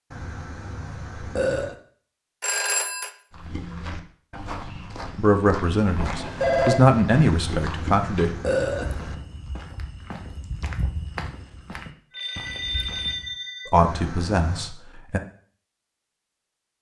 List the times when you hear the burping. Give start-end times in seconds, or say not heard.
0.1-1.8, 7.2-9.2, 13.8-14.8.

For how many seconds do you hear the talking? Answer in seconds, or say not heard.
5 s.